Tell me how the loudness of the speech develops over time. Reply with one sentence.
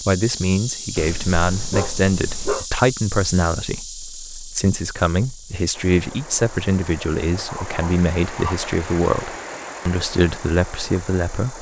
The loudness of the speech stays about the same.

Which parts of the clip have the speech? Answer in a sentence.
You can hear the speech from 0.0 to 11.5 s.